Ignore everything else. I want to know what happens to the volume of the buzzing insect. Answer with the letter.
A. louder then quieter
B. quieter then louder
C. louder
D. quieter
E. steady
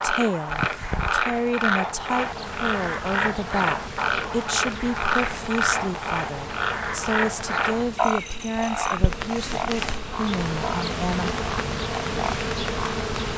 C.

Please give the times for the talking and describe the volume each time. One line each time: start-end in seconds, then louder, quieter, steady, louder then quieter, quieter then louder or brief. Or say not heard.
0.0-11.3 steady.